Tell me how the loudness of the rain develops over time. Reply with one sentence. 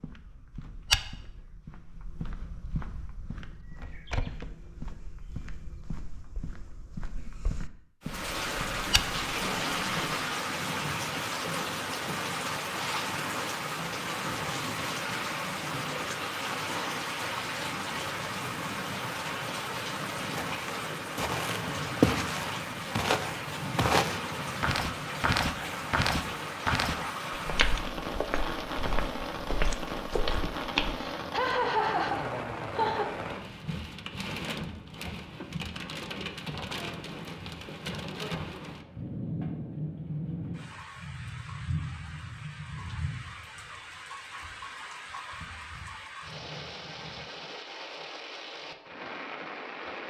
The volume of the rain goes down.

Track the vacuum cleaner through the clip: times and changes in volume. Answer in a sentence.
The vacuum cleaner can't be heard in this clip.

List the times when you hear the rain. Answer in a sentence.
You can hear the rain from 8.0 to 50.0 s.